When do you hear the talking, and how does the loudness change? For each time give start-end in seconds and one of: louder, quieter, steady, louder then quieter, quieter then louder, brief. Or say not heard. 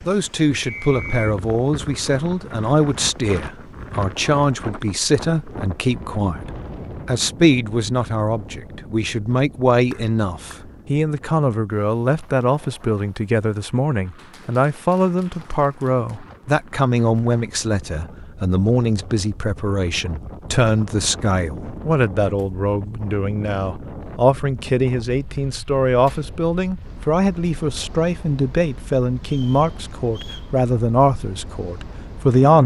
0.1-32.6 steady.